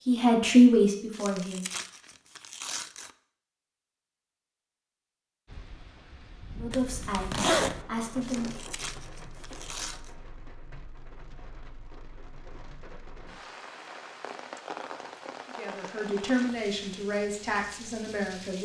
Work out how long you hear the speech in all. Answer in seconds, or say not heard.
7 s.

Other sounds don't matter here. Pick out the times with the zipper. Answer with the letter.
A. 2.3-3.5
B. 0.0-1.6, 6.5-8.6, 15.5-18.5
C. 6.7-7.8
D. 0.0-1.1
C.